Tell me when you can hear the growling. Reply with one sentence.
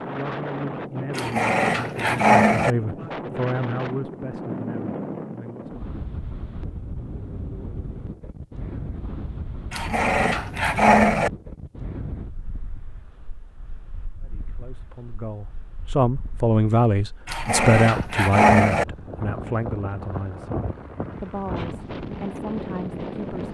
You can hear the growling from 1.1 to 2.8 s, from 9.7 to 11.3 s and from 17.2 to 18.9 s.